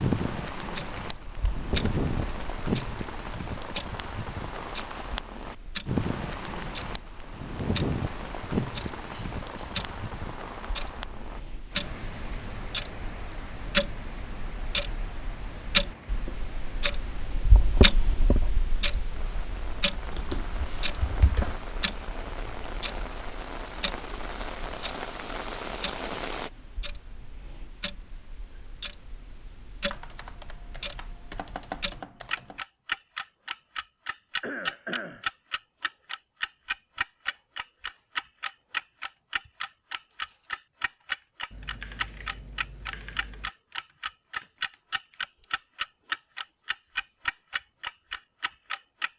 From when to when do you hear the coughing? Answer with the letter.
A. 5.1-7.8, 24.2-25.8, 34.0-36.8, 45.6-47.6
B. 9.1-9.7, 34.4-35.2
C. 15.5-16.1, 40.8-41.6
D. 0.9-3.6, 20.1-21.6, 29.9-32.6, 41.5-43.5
B.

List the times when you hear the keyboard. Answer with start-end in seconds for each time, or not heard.
0.9-3.6, 20.1-21.6, 29.9-32.6, 41.5-43.5.